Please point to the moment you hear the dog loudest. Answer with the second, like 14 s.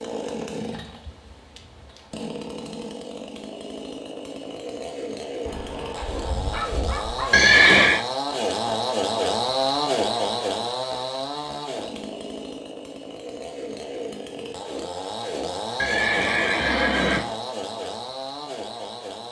7 s.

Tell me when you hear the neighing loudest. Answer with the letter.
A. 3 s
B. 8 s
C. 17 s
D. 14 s
B.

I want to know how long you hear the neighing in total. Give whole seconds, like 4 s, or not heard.
2 s.